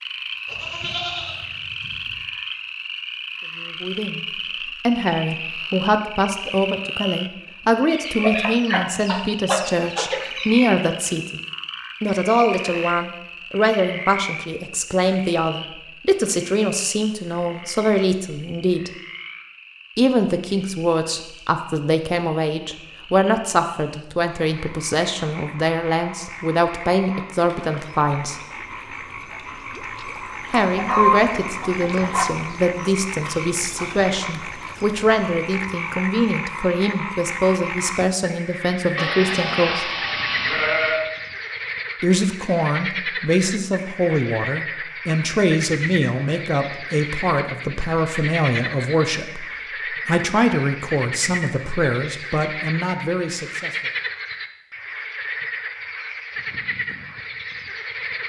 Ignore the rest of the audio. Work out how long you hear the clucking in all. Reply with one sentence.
The clucking can be heard for 4 seconds in total.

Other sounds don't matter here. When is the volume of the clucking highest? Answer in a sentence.
The volume of the clucking peaks at 31 seconds.